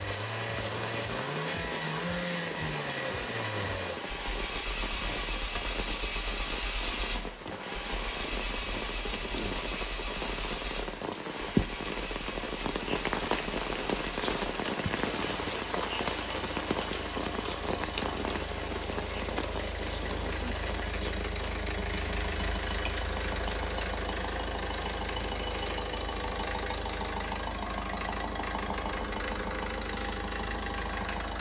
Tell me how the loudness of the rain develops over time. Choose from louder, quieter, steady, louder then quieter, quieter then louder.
louder then quieter.